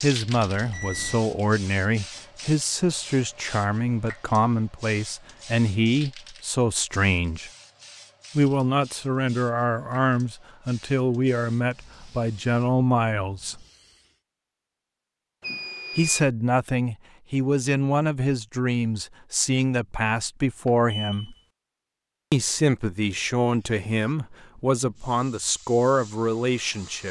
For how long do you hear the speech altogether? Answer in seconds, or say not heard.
23 s.